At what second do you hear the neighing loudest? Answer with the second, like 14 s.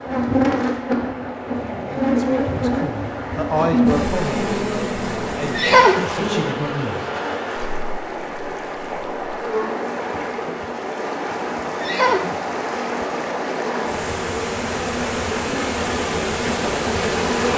6 s.